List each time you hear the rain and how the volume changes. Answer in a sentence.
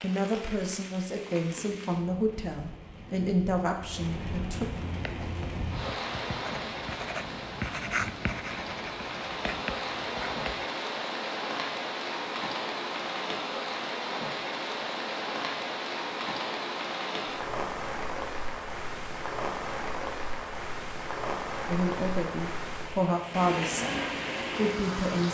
The rain can be heard from 0.0 to 25.3 s, getting louder.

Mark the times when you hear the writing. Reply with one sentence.
The writing can be heard from 4.9 to 10.7 s.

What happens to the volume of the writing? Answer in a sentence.
The volume of the writing goes up, then down.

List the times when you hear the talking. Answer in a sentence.
The talking can be heard from 0.0 to 4.7 s and from 21.6 to 25.3 s.